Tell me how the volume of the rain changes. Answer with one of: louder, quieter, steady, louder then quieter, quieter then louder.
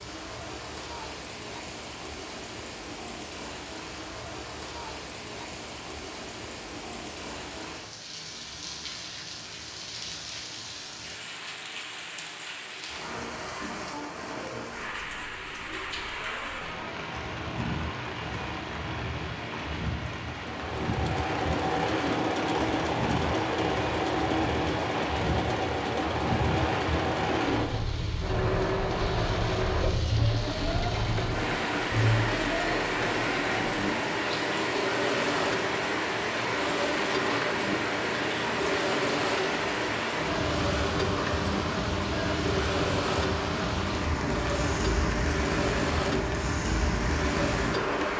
louder.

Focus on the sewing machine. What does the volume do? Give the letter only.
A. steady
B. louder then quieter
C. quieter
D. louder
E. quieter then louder
A.